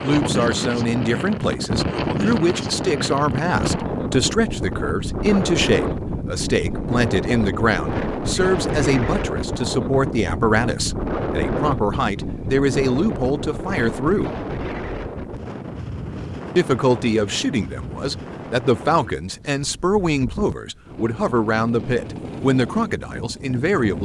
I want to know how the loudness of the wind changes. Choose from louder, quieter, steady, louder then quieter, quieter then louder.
quieter.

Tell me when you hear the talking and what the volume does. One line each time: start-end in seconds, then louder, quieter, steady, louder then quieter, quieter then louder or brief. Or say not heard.
0.0-14.3 steady
16.6-24.0 steady.